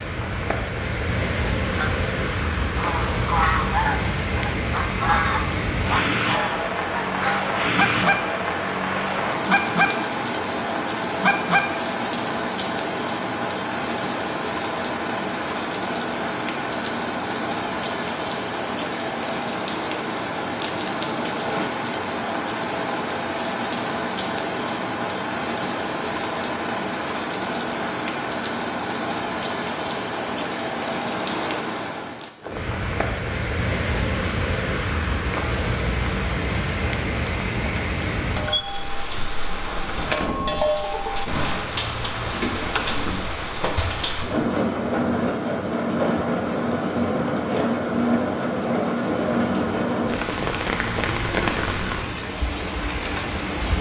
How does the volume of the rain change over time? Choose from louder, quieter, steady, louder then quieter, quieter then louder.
steady.